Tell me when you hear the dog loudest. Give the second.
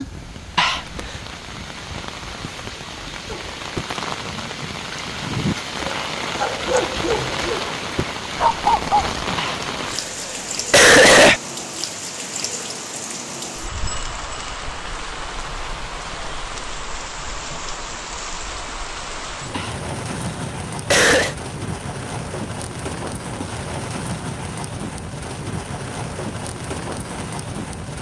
9 s.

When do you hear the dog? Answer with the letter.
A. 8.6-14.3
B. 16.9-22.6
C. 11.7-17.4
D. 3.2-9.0
D.